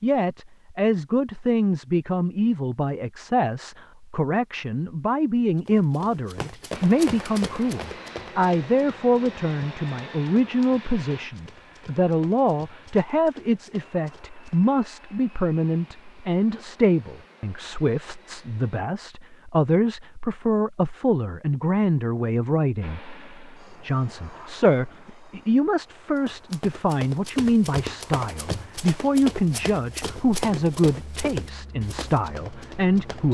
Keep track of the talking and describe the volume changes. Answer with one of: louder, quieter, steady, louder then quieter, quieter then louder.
steady.